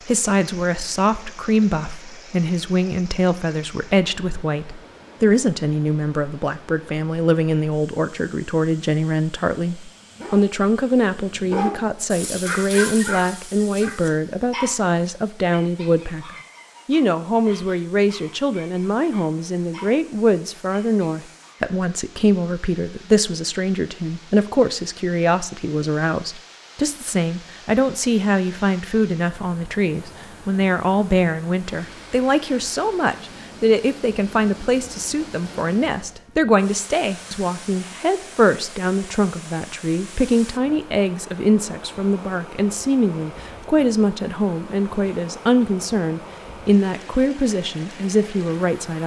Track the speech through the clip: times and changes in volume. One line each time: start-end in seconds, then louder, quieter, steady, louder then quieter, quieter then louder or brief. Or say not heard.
0.1-49.0 steady.